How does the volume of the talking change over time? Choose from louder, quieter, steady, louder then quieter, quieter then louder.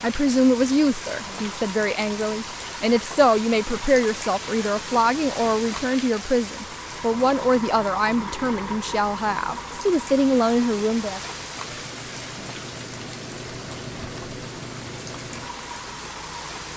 steady.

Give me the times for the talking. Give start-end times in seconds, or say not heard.
0.0-11.2.